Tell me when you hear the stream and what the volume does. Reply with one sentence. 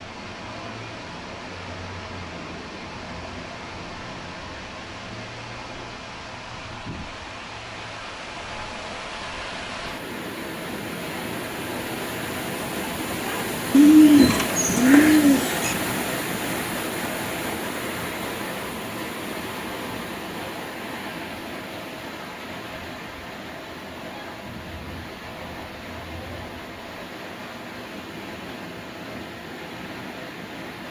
You can hear the stream from 0.0 to 30.8 s, getting louder then quieter.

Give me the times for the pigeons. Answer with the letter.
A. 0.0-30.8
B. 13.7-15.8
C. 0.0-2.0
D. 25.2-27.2
B.